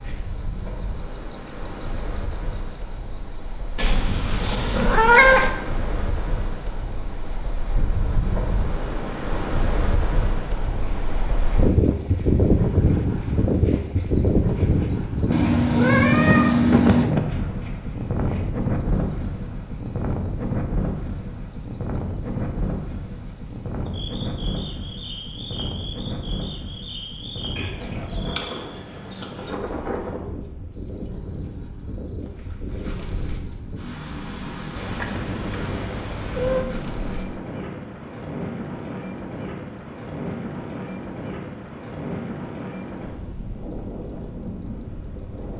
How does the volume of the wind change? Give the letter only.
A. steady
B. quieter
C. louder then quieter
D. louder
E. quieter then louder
C.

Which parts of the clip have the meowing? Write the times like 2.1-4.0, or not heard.
3.8-5.5, 15.3-17.1, 34.8-36.6.